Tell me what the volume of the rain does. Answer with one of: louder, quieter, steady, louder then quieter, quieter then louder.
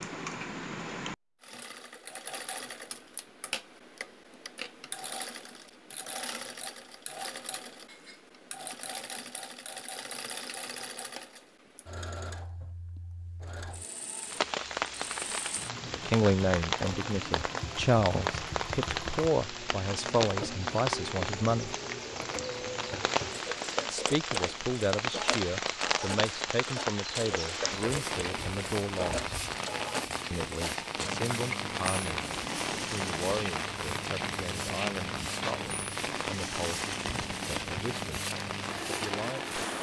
steady.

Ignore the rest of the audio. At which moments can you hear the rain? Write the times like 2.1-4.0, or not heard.
14.2-39.7.